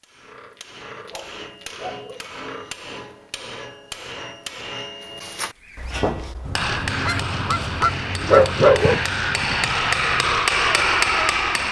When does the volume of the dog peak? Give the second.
9 s.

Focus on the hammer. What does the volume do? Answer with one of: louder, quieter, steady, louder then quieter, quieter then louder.
louder.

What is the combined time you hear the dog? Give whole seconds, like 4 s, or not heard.
3 s.